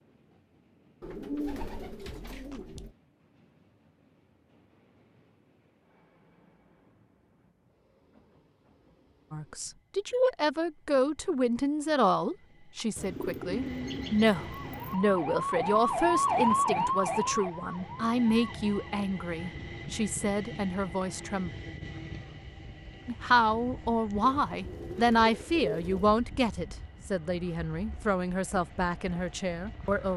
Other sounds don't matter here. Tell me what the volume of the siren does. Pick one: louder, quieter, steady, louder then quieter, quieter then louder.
louder then quieter.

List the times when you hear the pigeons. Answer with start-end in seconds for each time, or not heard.
1.0-3.0, 12.9-14.9, 24.2-26.1.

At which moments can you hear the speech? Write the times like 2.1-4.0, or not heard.
9.3-21.5, 23.1-30.1.